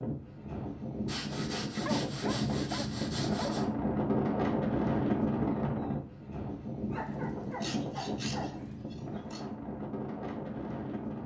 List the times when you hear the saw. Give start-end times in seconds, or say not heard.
1.1-3.6, 7.6-9.4.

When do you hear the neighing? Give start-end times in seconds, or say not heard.
not heard.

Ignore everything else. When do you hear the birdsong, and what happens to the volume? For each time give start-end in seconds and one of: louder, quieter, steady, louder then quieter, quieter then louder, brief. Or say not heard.
not heard.